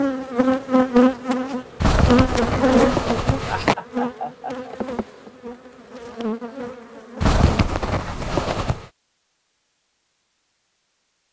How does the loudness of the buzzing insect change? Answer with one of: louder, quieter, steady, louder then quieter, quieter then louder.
quieter.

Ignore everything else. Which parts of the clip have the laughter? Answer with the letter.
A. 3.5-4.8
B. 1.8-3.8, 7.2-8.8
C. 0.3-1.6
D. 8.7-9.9
A.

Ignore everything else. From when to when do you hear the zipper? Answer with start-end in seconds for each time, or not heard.
1.8-3.8, 7.2-8.8.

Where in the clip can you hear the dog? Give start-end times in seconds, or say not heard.
not heard.